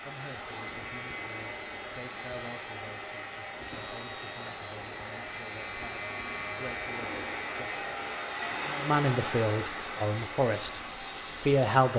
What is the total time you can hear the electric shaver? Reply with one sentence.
You can hear the electric shaver for 12 seconds altogether.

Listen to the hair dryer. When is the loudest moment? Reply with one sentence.
The loudest moment of the hair dryer is at 9 seconds.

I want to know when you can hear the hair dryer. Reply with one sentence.
The hair dryer can be heard from 0.0 to 11.9 s.